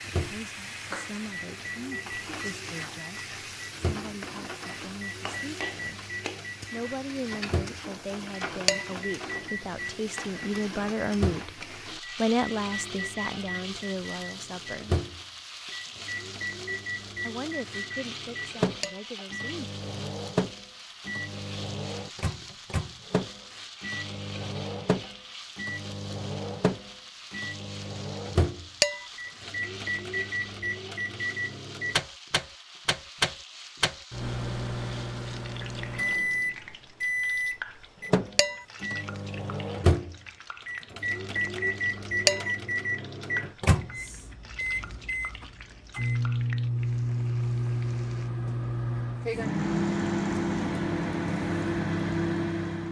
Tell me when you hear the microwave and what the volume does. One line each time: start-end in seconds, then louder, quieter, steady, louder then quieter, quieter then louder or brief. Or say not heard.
0.0-52.8 louder.